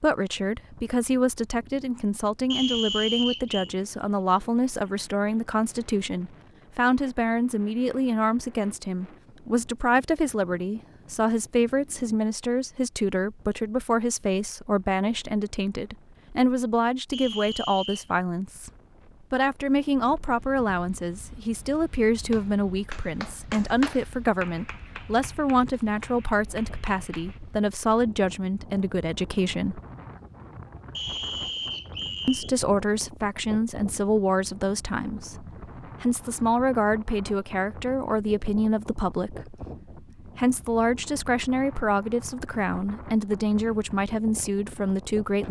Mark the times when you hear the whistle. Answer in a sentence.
The whistle can be heard from 2.5 to 3.7 s, from 17.1 to 18.1 s and from 30.9 to 32.5 s.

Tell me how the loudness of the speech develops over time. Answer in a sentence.
The volume of the speech stays about the same.